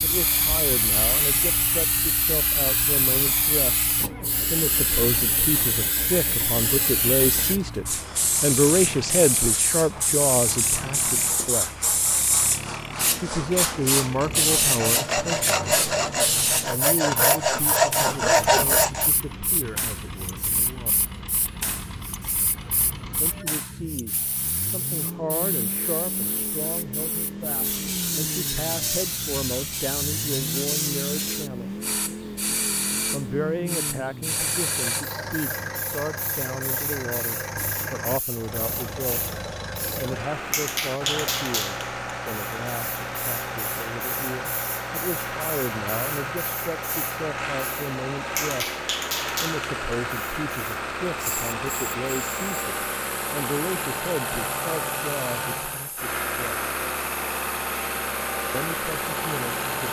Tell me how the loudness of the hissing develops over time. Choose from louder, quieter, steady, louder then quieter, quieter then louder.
quieter.